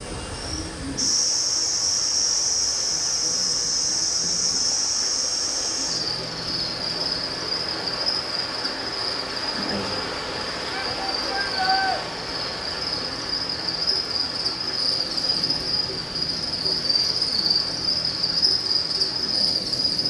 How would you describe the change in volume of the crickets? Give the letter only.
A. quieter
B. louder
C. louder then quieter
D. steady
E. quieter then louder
E.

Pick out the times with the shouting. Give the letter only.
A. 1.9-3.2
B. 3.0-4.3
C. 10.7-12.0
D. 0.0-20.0
C.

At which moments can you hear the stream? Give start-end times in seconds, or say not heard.
0.0-20.0.